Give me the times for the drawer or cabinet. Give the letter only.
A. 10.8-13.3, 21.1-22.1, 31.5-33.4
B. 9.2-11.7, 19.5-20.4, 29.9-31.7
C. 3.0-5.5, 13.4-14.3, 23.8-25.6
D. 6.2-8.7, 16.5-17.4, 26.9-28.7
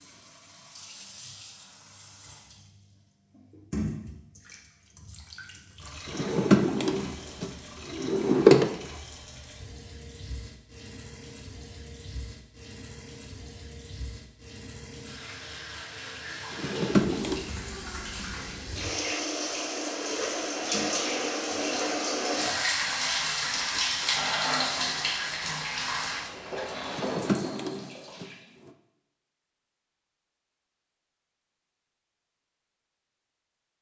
D.